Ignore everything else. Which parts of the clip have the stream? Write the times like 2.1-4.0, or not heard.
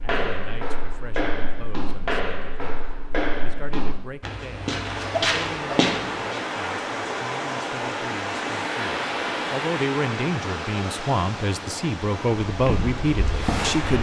4.7-13.9.